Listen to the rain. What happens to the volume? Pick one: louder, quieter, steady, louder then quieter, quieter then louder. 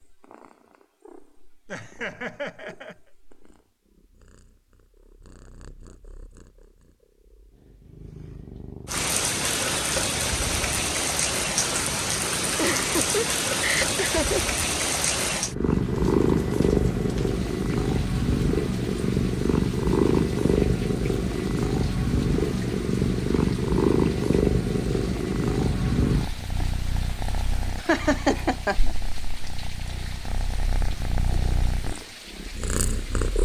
quieter.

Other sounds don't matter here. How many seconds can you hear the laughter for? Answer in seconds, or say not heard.
4 s.